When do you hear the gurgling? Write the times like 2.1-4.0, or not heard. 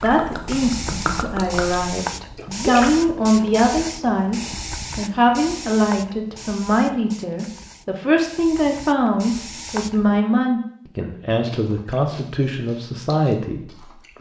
0.0-2.9.